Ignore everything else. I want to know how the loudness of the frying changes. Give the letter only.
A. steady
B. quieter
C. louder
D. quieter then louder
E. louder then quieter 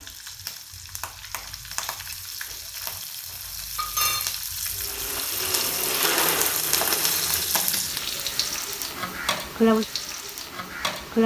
C.